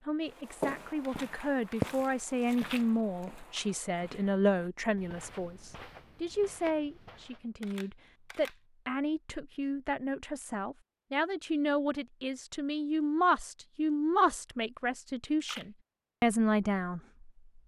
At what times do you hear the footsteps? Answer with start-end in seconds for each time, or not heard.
0.3-7.5.